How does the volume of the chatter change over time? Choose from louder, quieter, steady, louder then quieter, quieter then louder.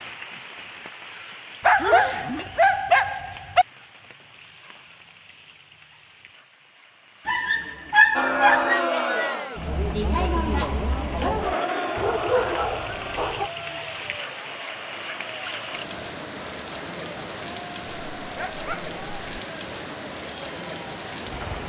quieter.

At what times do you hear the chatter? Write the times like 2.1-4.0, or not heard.
8.2-21.6.